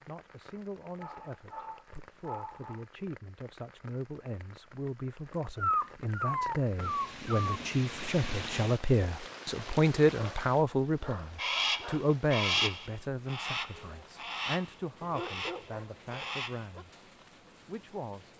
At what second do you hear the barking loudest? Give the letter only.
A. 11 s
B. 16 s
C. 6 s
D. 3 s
C.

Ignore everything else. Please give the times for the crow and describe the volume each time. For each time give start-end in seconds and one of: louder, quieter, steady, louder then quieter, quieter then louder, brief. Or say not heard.
11.3-16.7 quieter.